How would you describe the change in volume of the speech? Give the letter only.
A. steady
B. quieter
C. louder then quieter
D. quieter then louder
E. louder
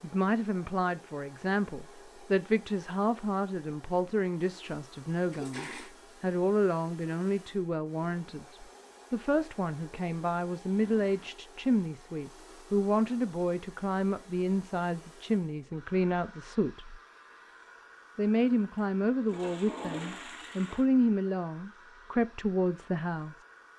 A.